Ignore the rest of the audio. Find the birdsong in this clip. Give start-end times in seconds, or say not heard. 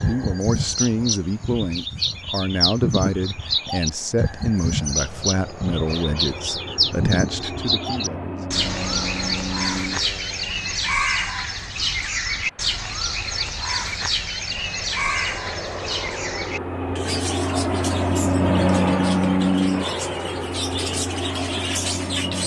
0.0-22.4.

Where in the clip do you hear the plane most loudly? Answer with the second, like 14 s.
19 s.